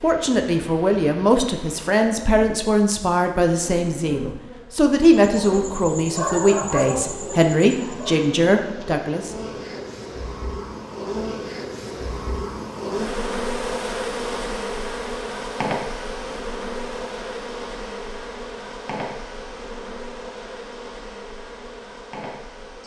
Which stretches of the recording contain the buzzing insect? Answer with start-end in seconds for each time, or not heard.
0.0-22.8.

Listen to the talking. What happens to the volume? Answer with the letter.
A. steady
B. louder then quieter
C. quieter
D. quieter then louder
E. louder
A.